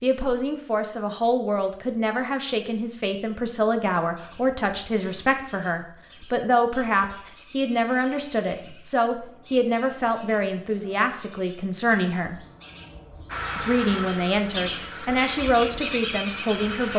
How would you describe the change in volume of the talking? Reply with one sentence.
The volume of the talking stays about the same.